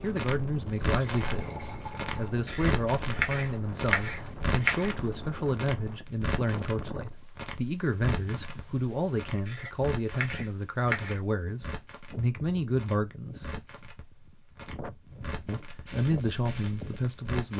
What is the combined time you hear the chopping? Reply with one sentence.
You can hear the chopping for 4 seconds altogether.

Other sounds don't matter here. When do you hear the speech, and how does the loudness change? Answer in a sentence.
The speech can be heard from 0.0 to 13.4 s, at a steady volume; and briefly from 15.4 to 17.5 s.